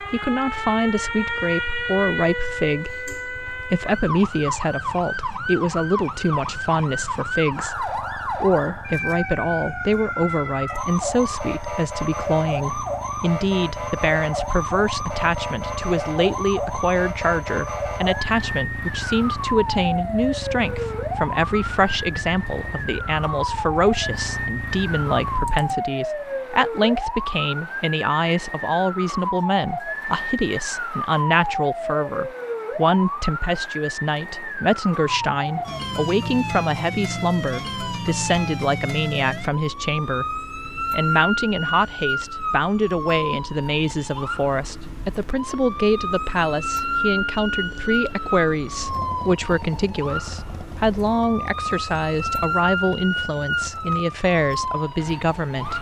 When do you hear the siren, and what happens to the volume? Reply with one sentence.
The siren can be heard from 0.0 to 55.7 s, at a steady volume.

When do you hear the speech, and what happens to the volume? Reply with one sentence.
You can hear the speech from 0.0 to 55.7 s, at a steady volume.